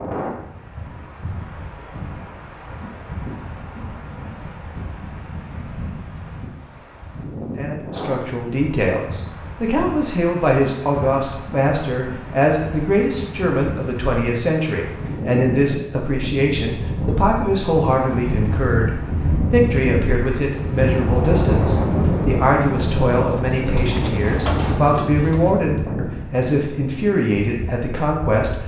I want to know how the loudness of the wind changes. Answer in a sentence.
The volume of the wind goes up.